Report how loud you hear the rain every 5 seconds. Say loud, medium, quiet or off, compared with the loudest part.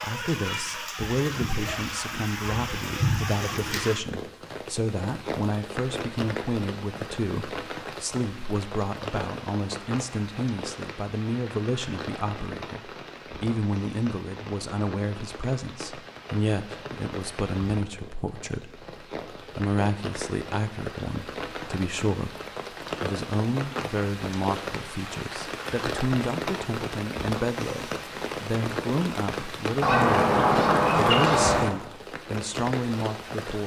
loud, loud, medium, medium, loud, loud, loud.